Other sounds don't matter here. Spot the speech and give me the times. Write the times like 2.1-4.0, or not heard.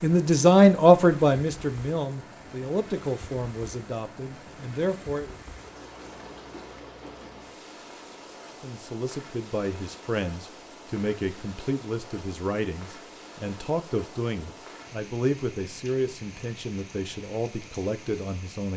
0.0-5.3, 8.6-18.7.